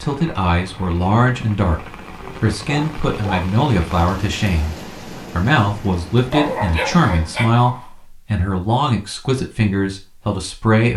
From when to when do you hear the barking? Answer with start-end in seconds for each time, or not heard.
2.2-3.5, 6.3-7.8.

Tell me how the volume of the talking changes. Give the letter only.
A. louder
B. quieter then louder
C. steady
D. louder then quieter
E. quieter
C.